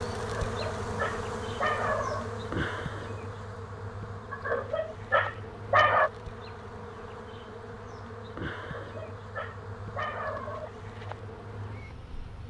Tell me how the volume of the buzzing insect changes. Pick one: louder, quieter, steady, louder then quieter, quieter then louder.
quieter.